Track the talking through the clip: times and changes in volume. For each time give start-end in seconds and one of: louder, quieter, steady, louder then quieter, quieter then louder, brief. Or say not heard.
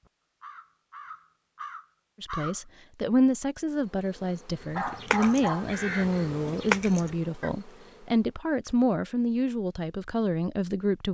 2.2-11.1 steady.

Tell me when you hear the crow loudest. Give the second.
7 s.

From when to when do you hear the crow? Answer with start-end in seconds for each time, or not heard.
0.0-2.6, 4.6-7.5.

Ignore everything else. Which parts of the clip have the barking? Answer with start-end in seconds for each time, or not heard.
4.8-5.7.